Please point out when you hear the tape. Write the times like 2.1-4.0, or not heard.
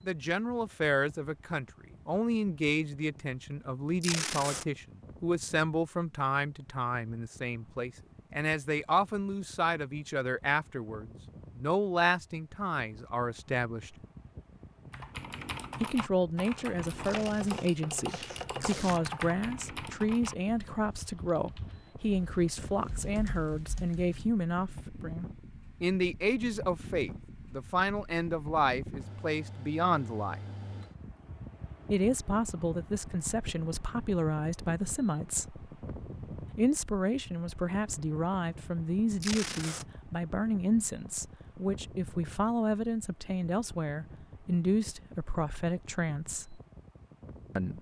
4.0-4.7, 17.1-19.0, 39.2-39.9.